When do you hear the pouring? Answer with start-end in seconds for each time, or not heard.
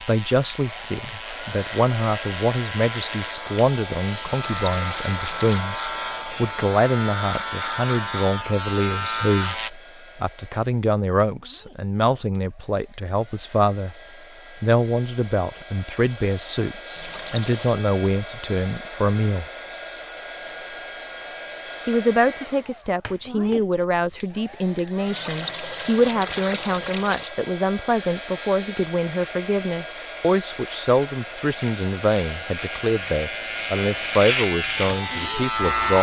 4.3-5.7, 16.9-17.8, 25.1-27.3.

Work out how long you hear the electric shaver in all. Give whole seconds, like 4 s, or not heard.
18 s.